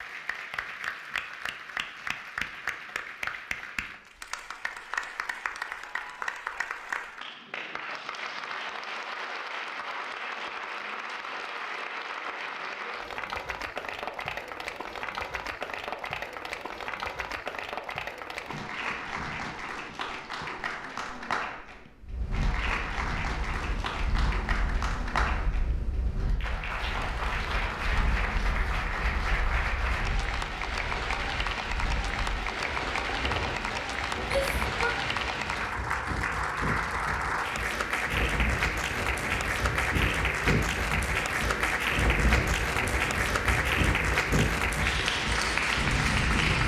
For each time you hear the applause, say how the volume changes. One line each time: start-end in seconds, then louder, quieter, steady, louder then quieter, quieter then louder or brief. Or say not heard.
0.0-46.6 louder.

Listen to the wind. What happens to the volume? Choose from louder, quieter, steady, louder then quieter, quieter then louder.
louder.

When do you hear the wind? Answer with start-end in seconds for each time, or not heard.
22.0-46.6.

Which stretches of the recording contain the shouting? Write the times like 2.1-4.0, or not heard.
34.2-35.0.